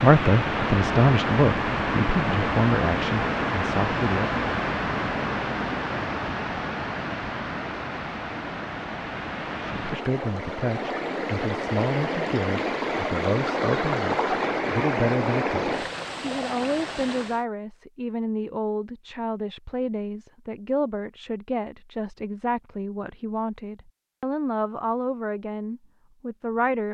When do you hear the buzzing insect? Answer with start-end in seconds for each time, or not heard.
not heard.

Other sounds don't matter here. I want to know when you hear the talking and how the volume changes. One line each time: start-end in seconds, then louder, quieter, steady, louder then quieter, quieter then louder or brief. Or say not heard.
0.0-4.5 quieter
9.8-26.8 steady.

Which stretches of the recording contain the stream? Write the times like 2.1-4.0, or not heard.
0.0-17.4.